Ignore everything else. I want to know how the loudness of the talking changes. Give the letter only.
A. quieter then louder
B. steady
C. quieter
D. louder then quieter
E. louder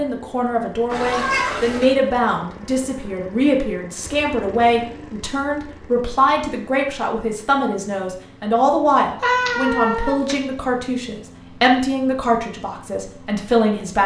B.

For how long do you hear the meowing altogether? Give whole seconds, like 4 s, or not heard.
2 s.